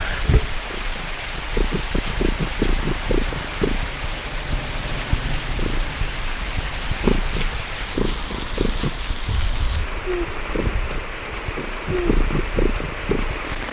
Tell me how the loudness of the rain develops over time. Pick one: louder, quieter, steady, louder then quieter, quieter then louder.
steady.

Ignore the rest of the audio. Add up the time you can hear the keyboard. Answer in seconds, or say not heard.
not heard.